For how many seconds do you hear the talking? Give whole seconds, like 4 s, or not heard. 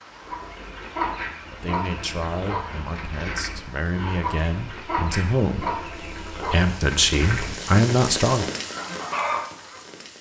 6 s.